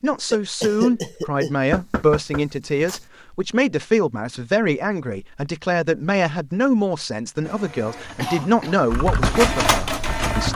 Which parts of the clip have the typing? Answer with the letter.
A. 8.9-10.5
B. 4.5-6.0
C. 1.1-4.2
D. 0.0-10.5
A.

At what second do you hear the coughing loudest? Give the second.
1 s.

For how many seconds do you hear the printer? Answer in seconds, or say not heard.
3 s.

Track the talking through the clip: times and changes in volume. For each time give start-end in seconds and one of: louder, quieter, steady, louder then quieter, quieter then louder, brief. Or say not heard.
0.0-10.5 steady.